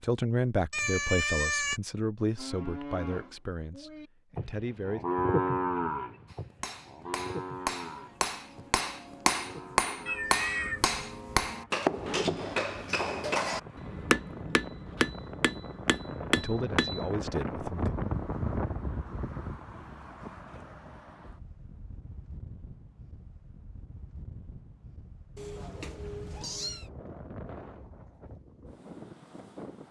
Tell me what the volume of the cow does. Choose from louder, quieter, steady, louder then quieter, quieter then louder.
louder then quieter.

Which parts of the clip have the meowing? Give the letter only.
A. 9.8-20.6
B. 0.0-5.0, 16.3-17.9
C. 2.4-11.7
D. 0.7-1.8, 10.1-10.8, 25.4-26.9
D.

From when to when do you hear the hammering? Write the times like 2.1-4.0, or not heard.
6.2-17.1.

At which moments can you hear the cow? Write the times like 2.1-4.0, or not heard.
2.4-11.7.